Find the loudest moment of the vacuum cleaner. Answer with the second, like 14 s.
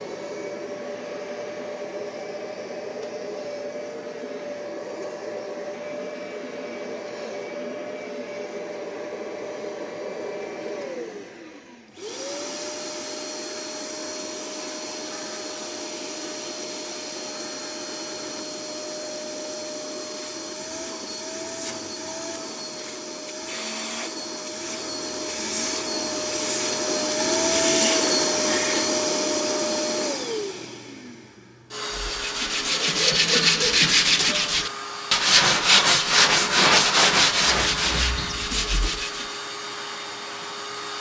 28 s.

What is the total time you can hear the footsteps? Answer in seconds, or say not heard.
not heard.